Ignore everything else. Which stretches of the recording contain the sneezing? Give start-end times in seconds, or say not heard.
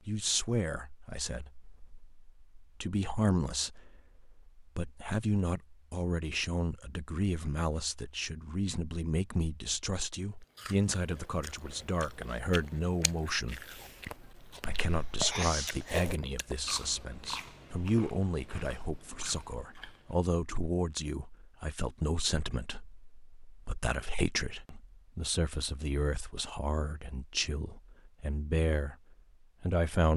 14.8-16.1.